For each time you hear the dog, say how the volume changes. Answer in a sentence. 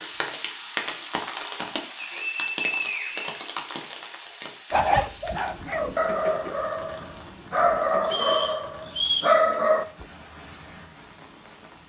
The dog can be heard from 4.7 to 10.1 s, getting louder.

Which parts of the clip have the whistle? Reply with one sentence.
The whistle can be heard from 1.9 to 3.5 s and from 8.1 to 9.3 s.